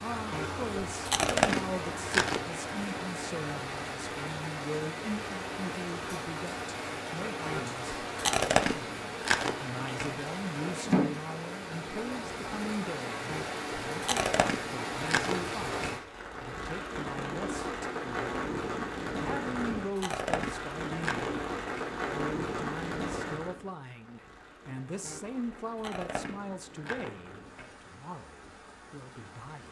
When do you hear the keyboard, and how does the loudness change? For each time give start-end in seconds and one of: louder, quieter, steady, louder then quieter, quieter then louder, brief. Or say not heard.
not heard.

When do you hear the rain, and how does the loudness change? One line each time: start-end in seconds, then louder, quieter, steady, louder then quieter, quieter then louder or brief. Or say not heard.
0.0-29.6 quieter.